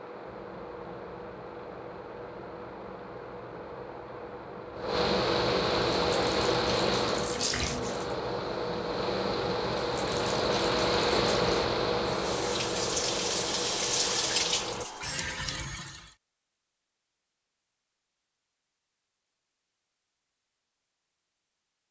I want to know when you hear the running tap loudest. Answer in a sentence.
The loudest moment of the running tap is at 14 seconds.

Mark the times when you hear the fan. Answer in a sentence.
You can hear the fan from 0.0 to 14.8 s.